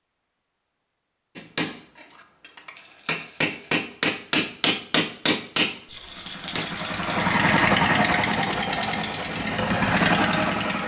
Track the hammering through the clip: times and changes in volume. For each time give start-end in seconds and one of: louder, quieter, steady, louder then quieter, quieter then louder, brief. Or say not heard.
1.4-6.7 louder.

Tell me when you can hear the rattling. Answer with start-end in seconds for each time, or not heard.
2.8-3.8, 5.8-7.4.